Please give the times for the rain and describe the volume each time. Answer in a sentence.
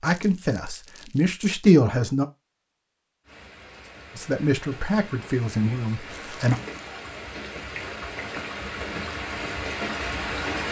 You can hear the rain from 3.2 to 10.6 s, getting louder.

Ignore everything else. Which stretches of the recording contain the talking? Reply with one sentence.
The talking can be heard from 0.0 to 2.2 s and from 4.2 to 6.5 s.